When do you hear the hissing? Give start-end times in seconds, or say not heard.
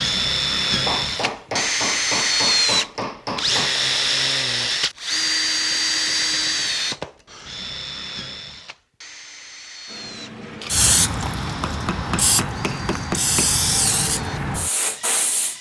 9.9-15.5.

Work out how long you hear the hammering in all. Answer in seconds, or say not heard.
5 s.